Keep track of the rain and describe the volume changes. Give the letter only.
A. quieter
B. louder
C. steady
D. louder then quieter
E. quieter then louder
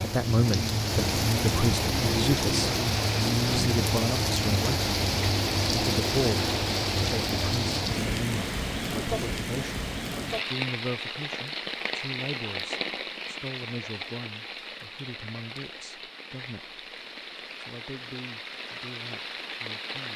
A.